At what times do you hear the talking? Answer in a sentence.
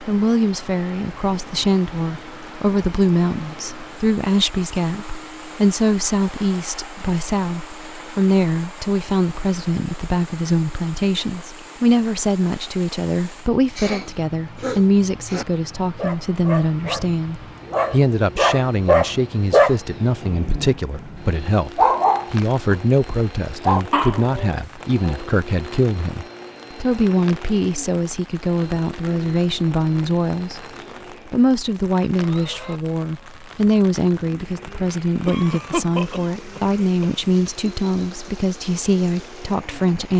The talking can be heard from 0.0 to 30.6 s and from 31.2 to 40.1 s.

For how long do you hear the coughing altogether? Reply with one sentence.
You can hear the coughing for 4 seconds altogether.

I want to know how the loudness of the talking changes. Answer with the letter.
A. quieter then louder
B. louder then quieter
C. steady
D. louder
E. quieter
C.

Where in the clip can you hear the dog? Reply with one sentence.
You can hear the dog from 15.9 to 22.8 s and from 23.6 to 25.3 s.